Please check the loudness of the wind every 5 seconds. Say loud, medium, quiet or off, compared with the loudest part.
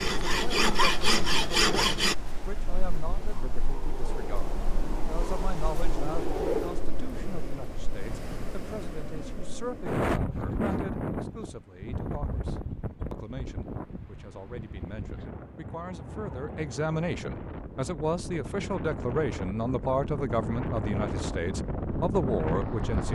medium, loud, loud, medium, loud.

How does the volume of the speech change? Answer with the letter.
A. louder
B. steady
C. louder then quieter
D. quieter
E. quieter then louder
A.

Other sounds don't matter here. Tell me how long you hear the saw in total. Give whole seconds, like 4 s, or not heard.
2 s.